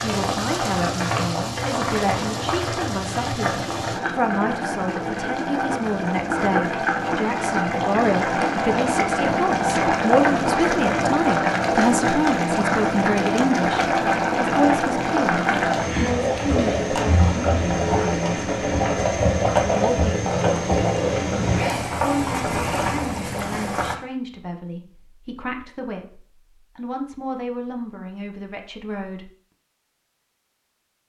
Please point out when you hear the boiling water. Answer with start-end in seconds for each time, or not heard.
0.0-23.9.